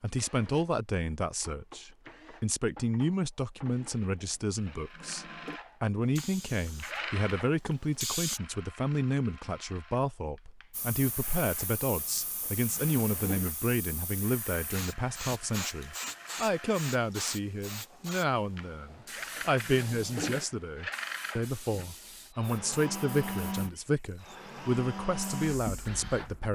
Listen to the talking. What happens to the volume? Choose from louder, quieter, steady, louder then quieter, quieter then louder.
steady.